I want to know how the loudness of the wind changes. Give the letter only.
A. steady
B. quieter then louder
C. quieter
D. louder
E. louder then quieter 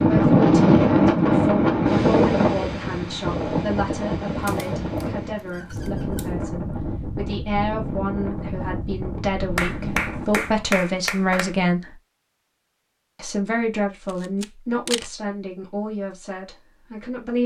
C.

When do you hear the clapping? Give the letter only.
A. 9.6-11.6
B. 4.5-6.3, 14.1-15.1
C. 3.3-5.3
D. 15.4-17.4
A.